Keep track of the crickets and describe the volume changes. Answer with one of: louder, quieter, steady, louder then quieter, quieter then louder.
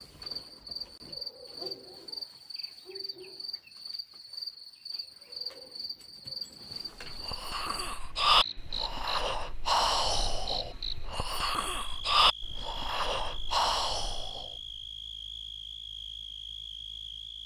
steady.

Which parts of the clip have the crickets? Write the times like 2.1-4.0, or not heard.
0.0-17.4.